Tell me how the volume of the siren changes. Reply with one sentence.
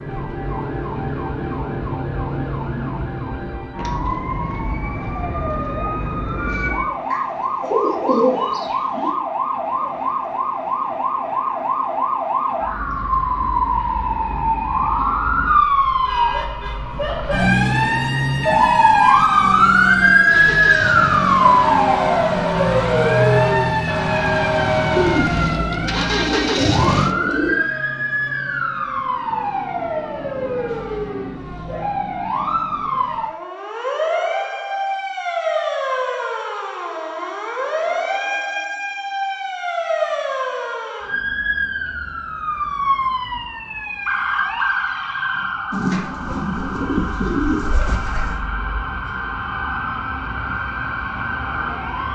The volume of the siren goes up, then down.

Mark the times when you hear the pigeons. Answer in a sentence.
The pigeons can be heard from 7.1 to 9.2 s, from 24.9 to 27.6 s and from 45.7 to 48.5 s.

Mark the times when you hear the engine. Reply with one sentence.
The engine can be heard from 20.2 to 27.1 s.